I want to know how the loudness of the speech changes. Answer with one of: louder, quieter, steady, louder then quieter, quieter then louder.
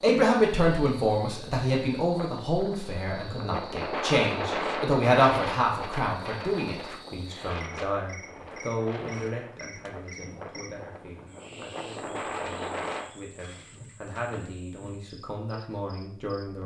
quieter then louder.